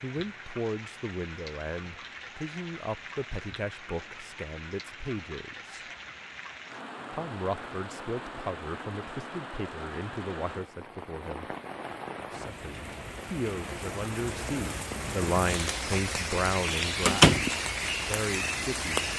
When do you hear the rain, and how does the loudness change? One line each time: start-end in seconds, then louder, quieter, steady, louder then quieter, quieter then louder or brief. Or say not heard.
0.0-19.1 louder.